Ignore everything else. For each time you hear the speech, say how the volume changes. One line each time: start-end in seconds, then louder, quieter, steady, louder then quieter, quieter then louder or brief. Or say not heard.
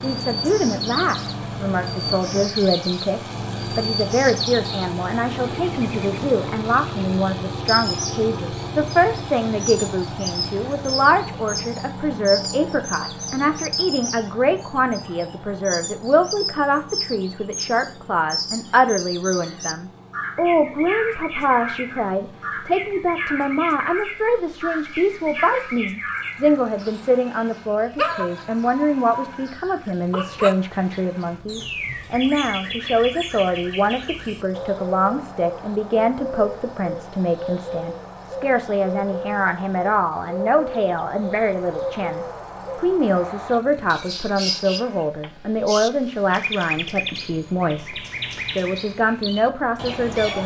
0.0-50.4 steady.